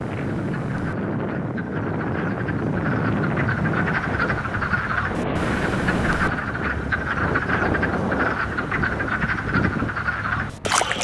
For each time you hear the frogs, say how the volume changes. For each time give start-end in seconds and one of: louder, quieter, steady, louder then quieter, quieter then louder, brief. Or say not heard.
0.0-10.9 louder.